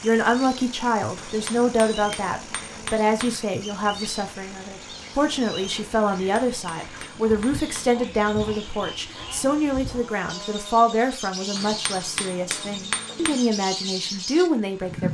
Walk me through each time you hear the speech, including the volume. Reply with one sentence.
You can hear the speech from 0.0 to 15.0 s, at a steady volume.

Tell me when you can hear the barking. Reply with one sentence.
You can't hear the barking here.